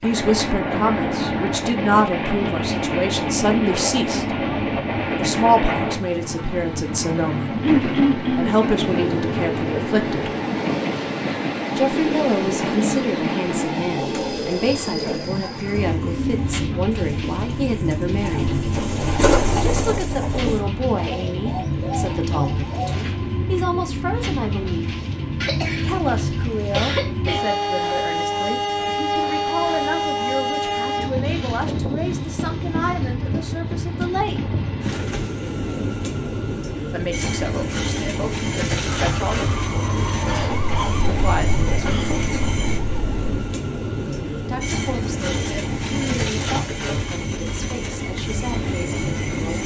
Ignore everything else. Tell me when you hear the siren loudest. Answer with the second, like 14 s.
40 s.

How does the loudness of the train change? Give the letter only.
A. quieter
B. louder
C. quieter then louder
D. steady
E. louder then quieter
D.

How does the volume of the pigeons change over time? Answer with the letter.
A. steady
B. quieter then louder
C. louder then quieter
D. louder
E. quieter
C.